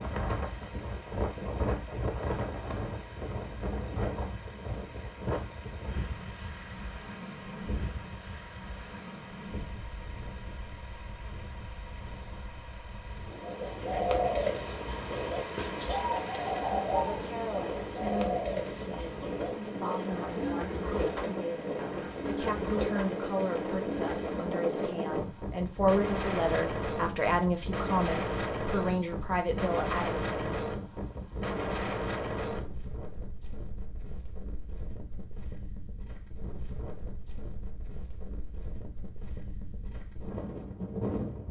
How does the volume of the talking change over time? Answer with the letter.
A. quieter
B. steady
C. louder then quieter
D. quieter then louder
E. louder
E.